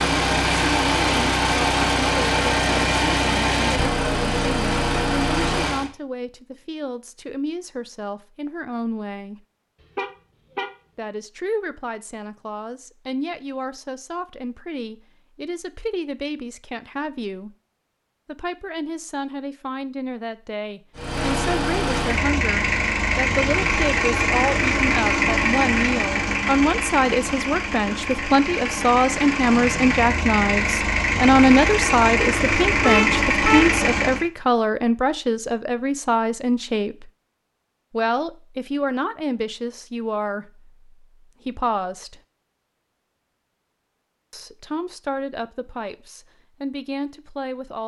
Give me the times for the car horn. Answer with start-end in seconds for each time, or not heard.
9.9-10.7, 32.8-33.8.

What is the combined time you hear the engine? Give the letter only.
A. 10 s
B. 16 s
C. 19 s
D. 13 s
C.